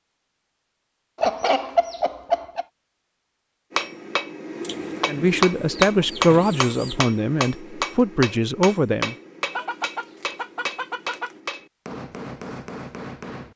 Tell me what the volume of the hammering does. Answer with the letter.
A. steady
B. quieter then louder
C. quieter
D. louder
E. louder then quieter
C.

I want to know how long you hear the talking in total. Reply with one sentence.
The talking can be heard for 4 seconds in total.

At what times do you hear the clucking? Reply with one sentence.
You can hear the clucking from 1.1 to 2.6 s, from 4.6 to 7.0 s and from 9.5 to 11.3 s.